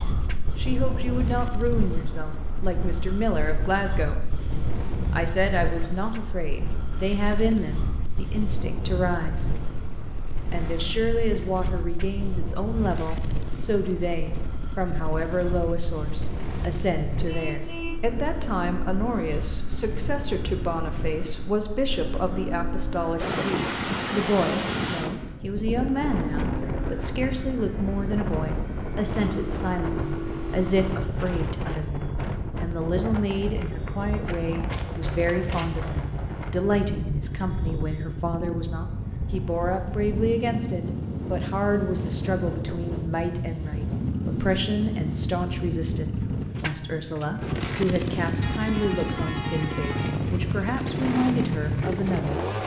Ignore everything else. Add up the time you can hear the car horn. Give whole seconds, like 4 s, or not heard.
3 s.